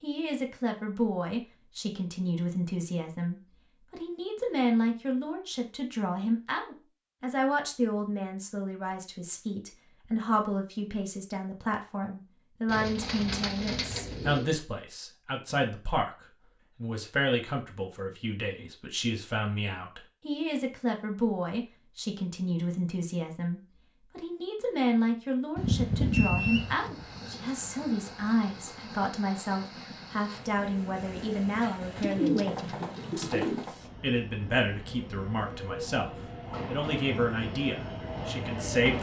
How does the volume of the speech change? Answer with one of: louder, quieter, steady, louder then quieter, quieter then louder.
steady.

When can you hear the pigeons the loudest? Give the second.
32 s.